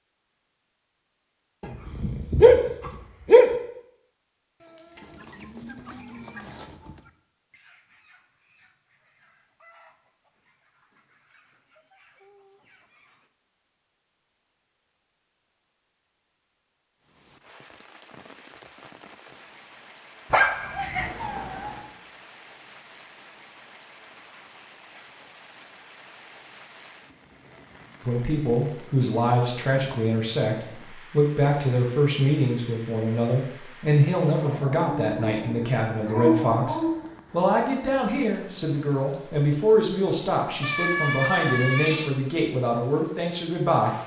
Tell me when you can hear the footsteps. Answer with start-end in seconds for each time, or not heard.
not heard.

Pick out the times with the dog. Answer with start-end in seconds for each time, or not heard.
1.6-3.5, 20.3-21.1, 34.4-37.0.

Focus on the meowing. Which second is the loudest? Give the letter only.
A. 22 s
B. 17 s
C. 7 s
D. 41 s
D.